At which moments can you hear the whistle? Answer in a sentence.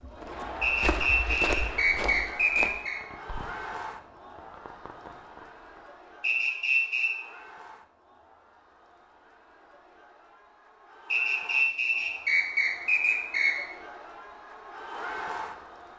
You can hear the whistle from 0.6 to 3.0 s, from 6.2 to 7.1 s and from 11.1 to 13.6 s.